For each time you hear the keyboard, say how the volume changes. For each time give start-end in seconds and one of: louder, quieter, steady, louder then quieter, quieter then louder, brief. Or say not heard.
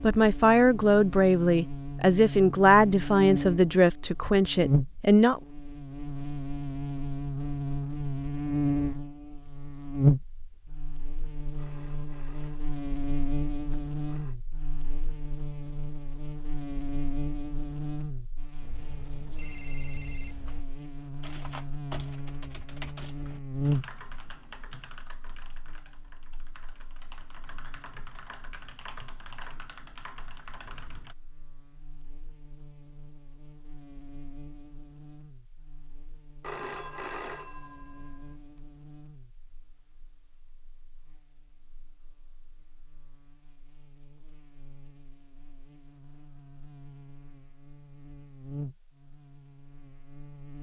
21.2-31.1 quieter then louder.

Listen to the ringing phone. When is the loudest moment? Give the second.
37 s.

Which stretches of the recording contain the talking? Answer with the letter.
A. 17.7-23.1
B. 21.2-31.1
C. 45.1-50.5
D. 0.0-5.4
D.